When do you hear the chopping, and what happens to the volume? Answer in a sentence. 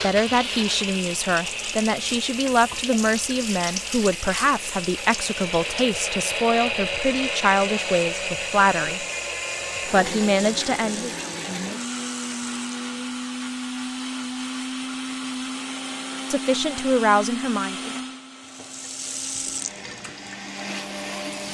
The chopping can't be heard in this clip.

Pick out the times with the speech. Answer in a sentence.
The speech can be heard from 0.0 to 9.1 s, from 9.8 to 11.3 s and from 16.3 to 17.9 s.